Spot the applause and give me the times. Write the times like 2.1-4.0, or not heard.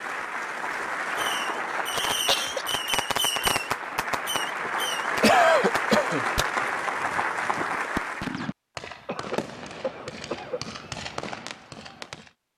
0.0-8.4.